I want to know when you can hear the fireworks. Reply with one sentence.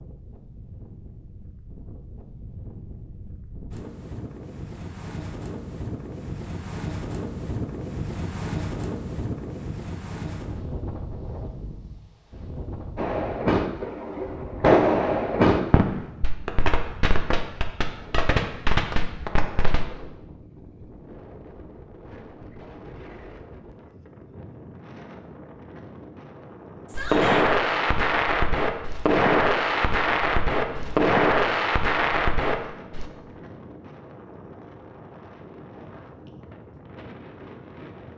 The fireworks can be heard from 12.9 to 19.9 s and from 26.9 to 33.0 s.